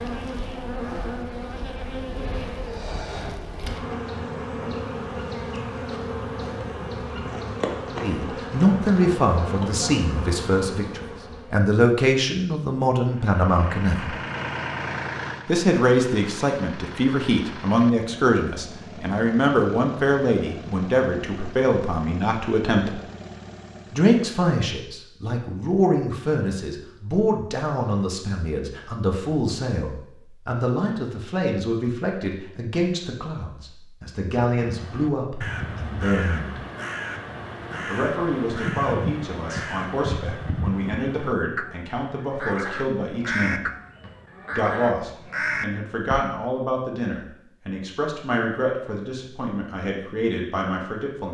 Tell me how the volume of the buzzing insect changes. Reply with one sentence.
The loudness of the buzzing insect stays about the same.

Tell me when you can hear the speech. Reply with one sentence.
You can hear the speech from 8.0 to 14.1 s, from 15.4 to 23.0 s, from 23.9 to 36.6 s, from 37.9 to 43.6 s and from 44.5 to 51.2 s.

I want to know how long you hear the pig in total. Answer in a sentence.
The pig can't be heard in this clip.